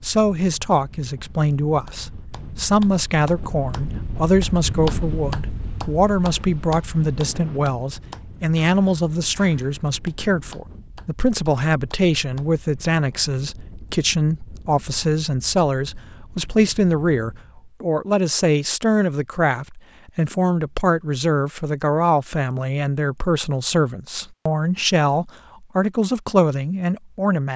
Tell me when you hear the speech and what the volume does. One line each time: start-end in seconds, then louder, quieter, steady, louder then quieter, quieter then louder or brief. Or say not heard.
0.0-27.5 steady.